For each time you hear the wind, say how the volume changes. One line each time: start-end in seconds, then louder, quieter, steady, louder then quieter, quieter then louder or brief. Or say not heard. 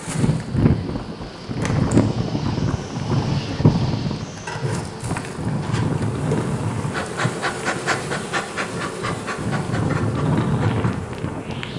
0.0-11.7 quieter then louder.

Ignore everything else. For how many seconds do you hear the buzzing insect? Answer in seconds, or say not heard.
12 s.